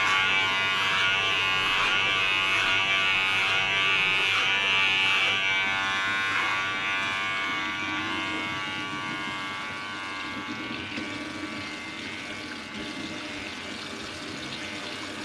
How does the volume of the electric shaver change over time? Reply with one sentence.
The volume of the electric shaver goes down.